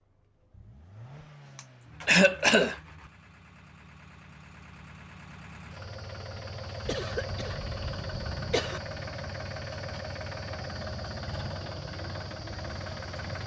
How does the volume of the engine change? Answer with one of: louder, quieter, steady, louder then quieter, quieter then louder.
louder.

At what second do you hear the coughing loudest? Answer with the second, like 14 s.
2 s.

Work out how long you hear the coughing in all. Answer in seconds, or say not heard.
3 s.